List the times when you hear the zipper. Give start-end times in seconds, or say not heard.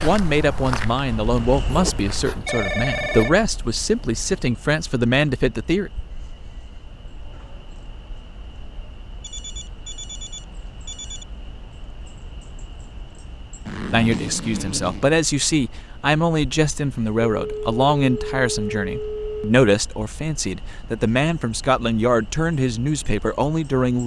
1.7-3.3, 13.7-15.1.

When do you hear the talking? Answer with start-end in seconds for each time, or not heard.
0.0-5.9, 13.9-24.0.